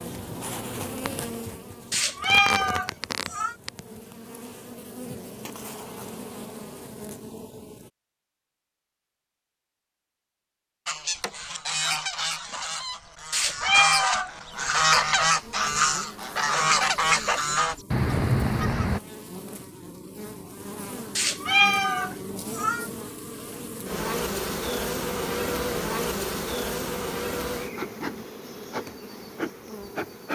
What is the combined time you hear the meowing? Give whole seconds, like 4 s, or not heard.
4 s.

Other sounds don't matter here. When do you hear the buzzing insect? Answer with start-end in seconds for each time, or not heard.
0.0-7.9, 14.5-30.3.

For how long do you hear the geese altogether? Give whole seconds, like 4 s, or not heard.
8 s.